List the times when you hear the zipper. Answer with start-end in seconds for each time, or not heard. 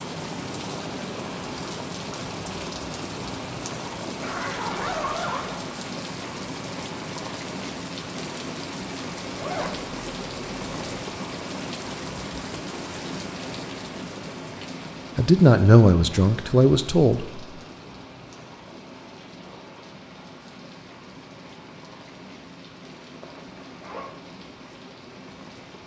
4.2-5.6, 9.3-11.1, 23.2-24.1.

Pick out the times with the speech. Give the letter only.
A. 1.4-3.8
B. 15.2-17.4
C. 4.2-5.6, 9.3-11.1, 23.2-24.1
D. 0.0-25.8
B.